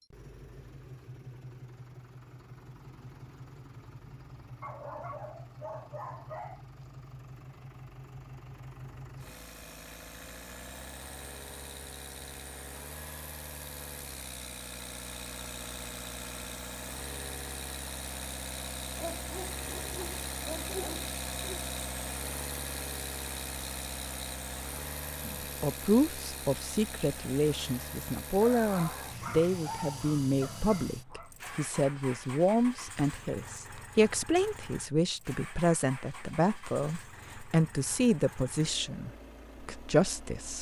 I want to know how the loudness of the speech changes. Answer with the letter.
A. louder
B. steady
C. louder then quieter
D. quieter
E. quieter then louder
B.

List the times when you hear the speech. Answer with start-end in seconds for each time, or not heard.
25.2-40.5.